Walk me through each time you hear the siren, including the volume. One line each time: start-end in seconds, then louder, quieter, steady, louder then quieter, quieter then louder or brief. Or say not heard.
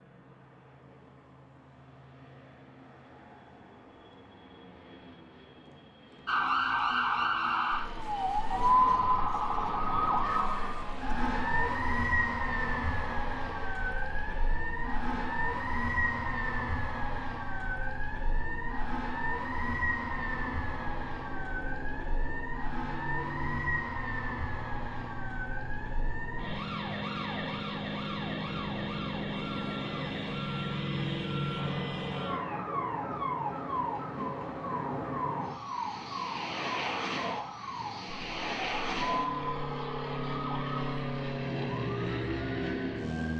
6.2-43.3 quieter.